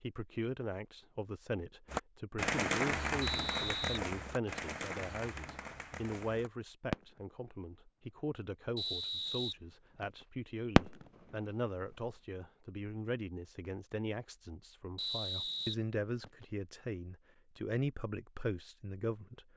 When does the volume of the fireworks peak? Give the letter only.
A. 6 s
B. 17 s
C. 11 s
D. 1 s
C.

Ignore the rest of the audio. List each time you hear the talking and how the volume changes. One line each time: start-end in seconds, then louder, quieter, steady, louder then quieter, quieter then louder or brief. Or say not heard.
0.0-19.4 steady.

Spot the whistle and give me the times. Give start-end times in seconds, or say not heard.
3.2-4.7, 8.8-10.2, 14.9-16.4.